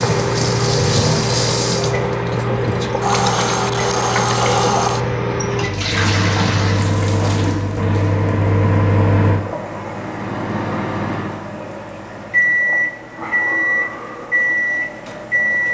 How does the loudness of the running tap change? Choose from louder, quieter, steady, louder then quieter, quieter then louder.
quieter.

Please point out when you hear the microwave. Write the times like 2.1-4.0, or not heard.
0.0-15.6.